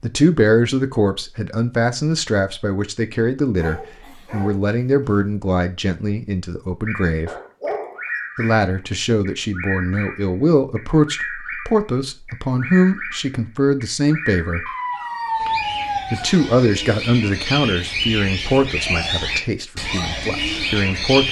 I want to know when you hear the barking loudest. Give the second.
15 s.